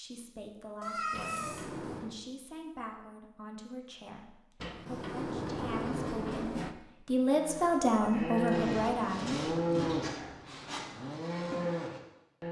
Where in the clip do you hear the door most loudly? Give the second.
6 s.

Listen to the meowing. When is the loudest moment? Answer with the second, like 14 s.
1 s.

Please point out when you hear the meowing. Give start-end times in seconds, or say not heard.
0.8-2.0, 8.2-8.7.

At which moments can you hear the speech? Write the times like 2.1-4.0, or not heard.
0.0-9.4.